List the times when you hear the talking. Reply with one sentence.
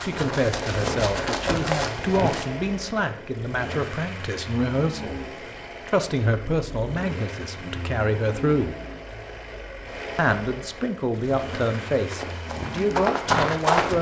The talking can be heard from 0.0 to 5.2 s, from 5.8 to 8.8 s and from 10.2 to 13.9 s.